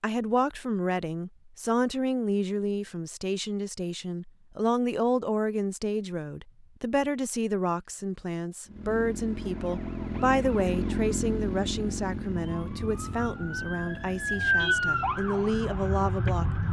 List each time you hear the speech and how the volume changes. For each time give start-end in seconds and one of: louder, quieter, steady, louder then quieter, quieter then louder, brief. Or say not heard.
0.0-16.6 steady.